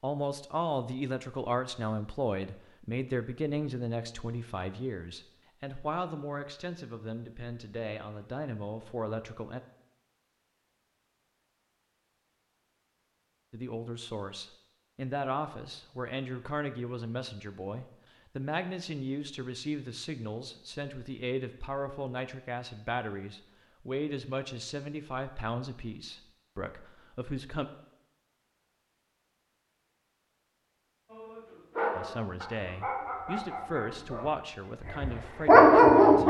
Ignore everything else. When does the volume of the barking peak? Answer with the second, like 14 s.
36 s.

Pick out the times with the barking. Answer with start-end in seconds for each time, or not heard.
31.1-36.2.